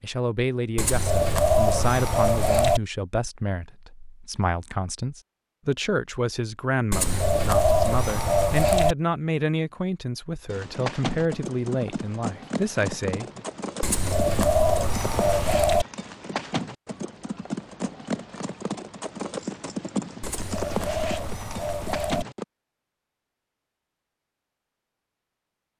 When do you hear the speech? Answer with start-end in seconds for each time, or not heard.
0.0-13.4.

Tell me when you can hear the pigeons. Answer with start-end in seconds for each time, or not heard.
0.8-2.8, 6.9-8.9, 13.8-15.8, 20.2-22.2.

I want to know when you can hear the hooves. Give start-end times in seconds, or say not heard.
10.4-22.4.